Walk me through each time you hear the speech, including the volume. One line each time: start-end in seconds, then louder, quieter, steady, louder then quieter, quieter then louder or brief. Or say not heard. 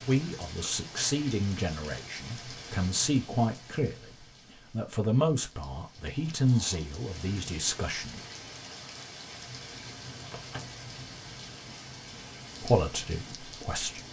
0.1-8.2 steady
12.6-14.0 brief.